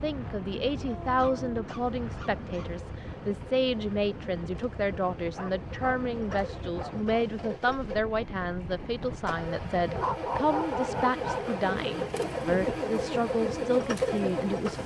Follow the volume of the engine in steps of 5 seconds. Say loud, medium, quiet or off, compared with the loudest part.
quiet, medium, loud.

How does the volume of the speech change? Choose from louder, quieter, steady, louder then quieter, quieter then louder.
steady.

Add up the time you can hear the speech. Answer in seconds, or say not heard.
15 s.